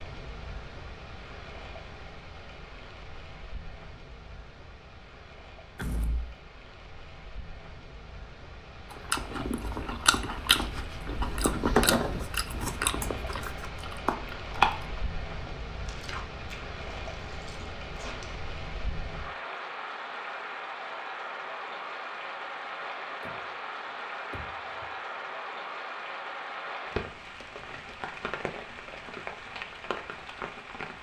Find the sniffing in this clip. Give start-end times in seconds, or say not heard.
not heard.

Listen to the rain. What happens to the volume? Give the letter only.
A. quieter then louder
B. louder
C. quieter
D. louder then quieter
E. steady
B.